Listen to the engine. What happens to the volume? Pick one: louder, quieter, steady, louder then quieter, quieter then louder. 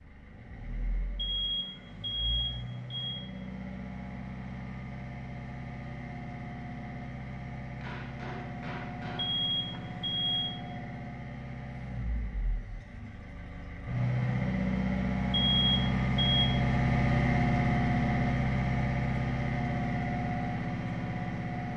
louder.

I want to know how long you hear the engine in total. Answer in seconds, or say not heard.
22 s.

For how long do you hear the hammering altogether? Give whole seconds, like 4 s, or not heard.
2 s.